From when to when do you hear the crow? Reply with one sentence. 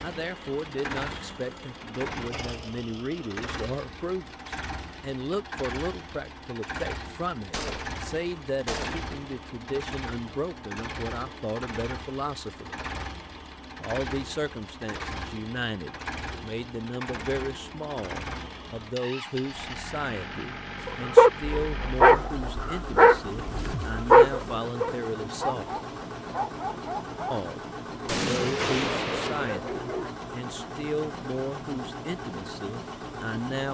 The crow can't be heard in this clip.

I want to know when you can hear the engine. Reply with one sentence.
You can hear the engine from 0.0 to 33.6 s.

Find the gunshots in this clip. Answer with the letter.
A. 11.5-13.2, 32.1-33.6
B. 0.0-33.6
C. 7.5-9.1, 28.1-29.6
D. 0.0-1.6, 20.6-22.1
C.